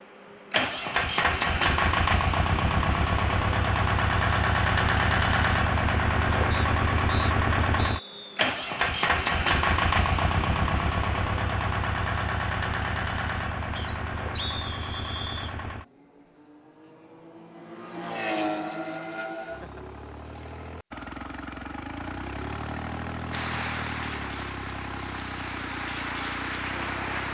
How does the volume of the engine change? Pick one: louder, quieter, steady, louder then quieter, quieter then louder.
quieter.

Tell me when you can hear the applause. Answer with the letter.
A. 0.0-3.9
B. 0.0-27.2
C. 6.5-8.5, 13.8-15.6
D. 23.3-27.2
D.